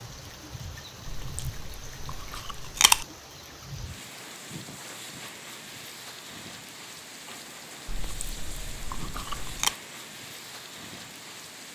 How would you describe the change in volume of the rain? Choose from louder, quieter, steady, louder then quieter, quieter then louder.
steady.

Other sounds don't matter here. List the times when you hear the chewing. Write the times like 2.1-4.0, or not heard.
1.1-3.0, 7.8-9.8.